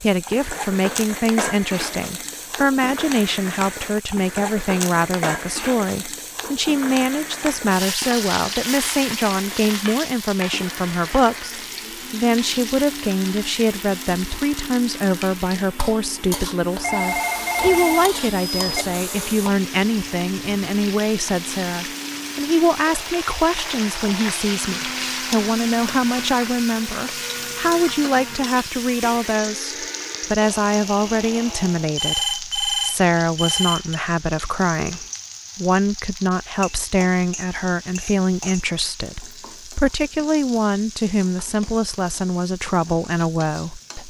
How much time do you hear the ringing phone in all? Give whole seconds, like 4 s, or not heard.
4 s.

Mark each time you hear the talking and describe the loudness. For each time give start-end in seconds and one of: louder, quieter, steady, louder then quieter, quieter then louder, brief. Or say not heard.
0.0-44.0 steady.